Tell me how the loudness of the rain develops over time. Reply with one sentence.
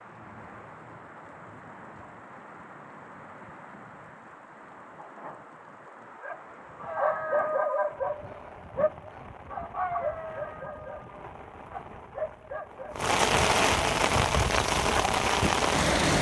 The volume of the rain goes up.